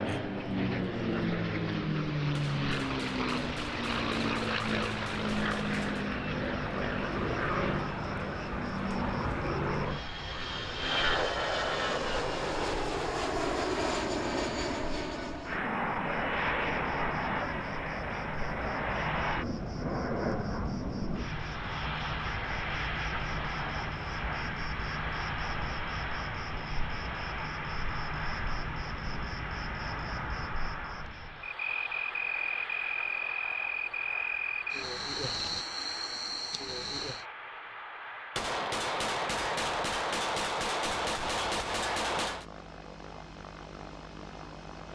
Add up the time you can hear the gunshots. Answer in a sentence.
You can hear the gunshots for 8 seconds altogether.